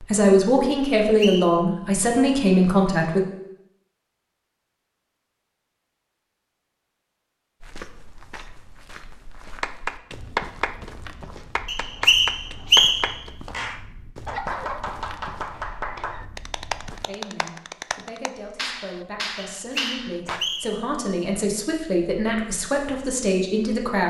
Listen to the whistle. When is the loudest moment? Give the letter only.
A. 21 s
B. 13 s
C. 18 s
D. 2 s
B.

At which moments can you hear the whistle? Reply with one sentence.
You can hear the whistle from 1.0 to 1.6 s, from 11.7 to 13.1 s and from 19.6 to 20.8 s.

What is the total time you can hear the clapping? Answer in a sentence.
You can hear the clapping for 11 seconds altogether.